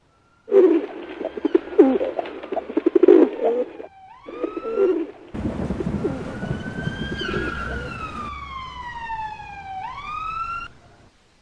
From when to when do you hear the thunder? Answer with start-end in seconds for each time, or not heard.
5.3-8.3.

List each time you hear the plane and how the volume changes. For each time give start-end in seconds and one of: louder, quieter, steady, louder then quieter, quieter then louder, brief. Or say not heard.
not heard.